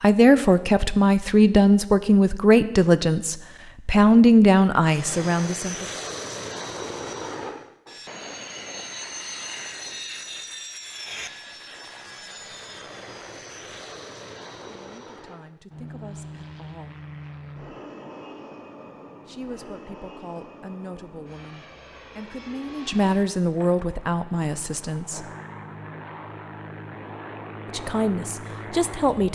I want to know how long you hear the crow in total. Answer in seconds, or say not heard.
not heard.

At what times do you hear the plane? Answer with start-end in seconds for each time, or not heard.
4.8-29.3.